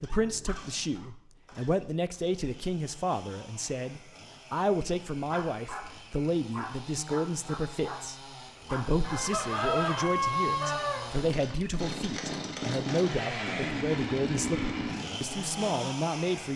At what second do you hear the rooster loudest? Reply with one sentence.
The loudest moment of the rooster is at 10 seconds.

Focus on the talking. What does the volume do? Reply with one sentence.
The volume of the talking stays about the same.